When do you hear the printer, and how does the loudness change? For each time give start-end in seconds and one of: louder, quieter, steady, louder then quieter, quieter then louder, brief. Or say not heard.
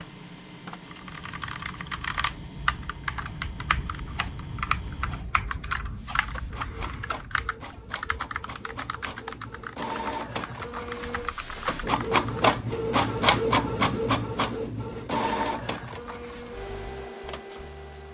0.0-18.0 louder then quieter.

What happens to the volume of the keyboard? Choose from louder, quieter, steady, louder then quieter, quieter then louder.
quieter.